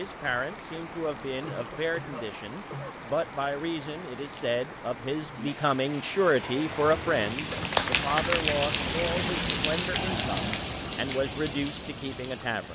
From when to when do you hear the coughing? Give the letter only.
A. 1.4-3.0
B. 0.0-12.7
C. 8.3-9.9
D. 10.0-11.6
A.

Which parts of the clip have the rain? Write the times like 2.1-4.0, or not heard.
0.0-12.7.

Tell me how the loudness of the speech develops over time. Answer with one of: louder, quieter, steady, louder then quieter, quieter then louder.
louder then quieter.